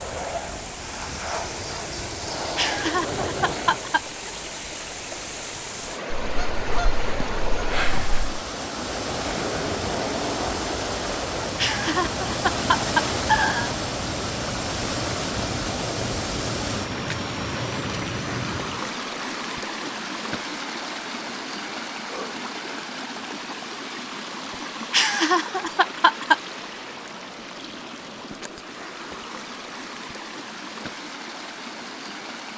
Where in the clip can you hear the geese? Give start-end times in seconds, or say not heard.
6.2-8.4.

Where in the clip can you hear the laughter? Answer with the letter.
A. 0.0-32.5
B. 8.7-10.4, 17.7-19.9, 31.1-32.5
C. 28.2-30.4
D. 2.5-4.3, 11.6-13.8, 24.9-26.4
D.